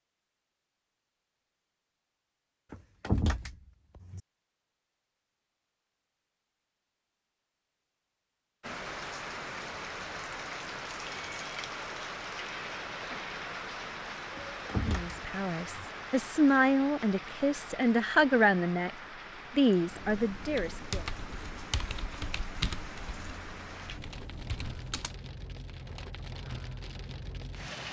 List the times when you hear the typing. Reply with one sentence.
You can hear the typing from 19.8 to 25.1 s.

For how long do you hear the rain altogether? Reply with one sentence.
You can hear the rain for 19 seconds altogether.